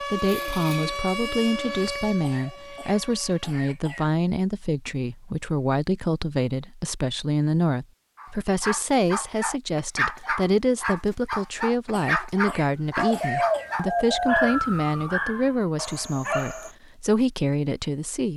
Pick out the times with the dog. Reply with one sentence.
The dog can be heard from 8.2 to 16.7 s.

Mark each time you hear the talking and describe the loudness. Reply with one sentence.
You can hear the talking from 0.0 to 18.3 s, at a steady volume.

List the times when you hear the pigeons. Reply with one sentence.
The pigeons can be heard from 0.1 to 2.0 s and from 12.9 to 14.6 s.